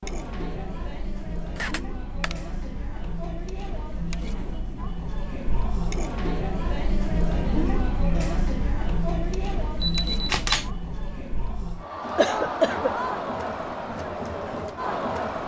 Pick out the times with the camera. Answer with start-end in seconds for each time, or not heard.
1.6-2.4, 9.8-10.7.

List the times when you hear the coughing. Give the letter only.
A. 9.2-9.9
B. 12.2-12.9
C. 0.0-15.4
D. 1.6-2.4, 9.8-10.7
B.